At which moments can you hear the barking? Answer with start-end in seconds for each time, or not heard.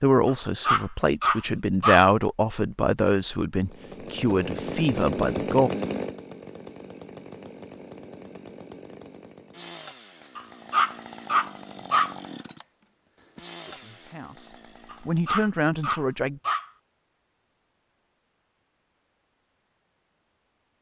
0.2-2.1, 10.3-12.2, 14.9-16.7.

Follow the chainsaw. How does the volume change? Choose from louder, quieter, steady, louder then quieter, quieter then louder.
quieter.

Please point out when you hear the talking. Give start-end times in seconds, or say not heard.
0.0-5.7, 13.7-16.4.